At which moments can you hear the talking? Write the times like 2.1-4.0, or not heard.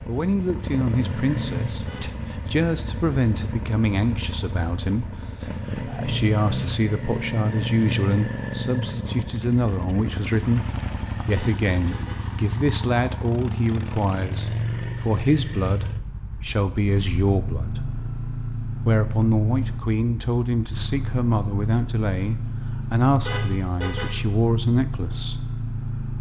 0.1-17.9, 18.8-25.4.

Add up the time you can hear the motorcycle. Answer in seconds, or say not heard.
26 s.